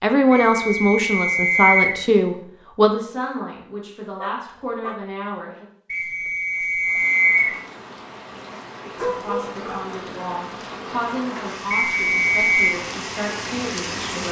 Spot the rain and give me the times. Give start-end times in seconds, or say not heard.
6.8-14.2.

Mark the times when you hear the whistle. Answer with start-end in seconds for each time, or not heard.
0.3-2.0, 5.9-7.5, 11.7-12.8.